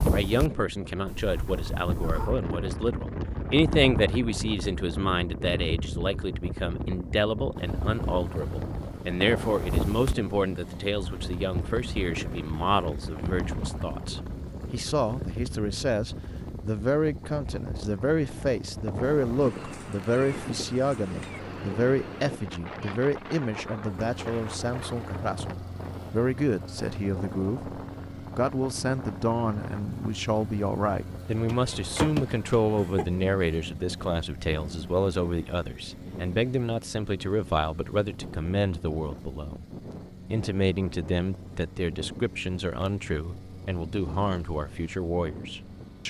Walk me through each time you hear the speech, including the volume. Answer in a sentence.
You can hear the speech from 0.0 to 39.6 s, at a steady volume; and from 40.3 to 46.0 s, at a steady volume.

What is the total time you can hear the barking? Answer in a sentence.
You can't hear the barking here.